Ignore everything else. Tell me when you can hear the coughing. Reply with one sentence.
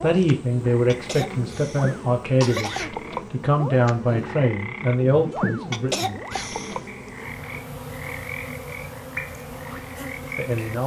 The coughing can be heard from 0.8 to 2.9 s and from 5.7 to 6.8 s.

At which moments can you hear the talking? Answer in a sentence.
The talking can be heard from 0.0 to 6.2 s and from 10.3 to 10.8 s.